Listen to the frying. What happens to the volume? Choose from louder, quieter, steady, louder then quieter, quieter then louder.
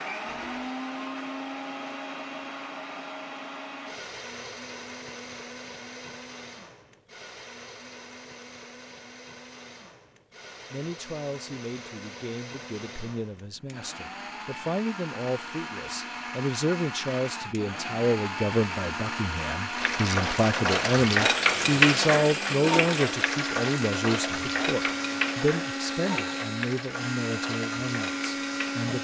quieter.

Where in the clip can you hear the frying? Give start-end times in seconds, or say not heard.
19.8-29.0.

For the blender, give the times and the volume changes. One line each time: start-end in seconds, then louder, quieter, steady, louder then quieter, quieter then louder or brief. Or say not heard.
0.0-29.0 quieter then louder.